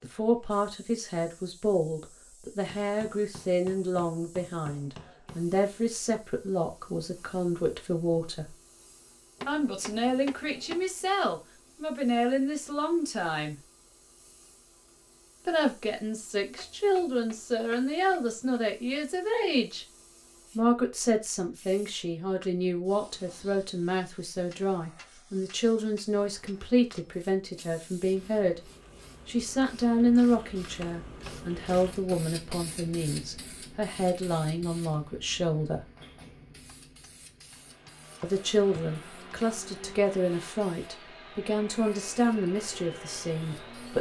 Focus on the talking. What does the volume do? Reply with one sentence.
The volume of the talking stays about the same.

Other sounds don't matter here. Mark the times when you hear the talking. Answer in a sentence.
You can hear the talking from 0.0 to 8.6 s, from 9.4 to 13.6 s, from 15.4 to 19.9 s, from 20.6 to 28.6 s, from 29.2 to 35.9 s and from 38.2 to 43.9 s.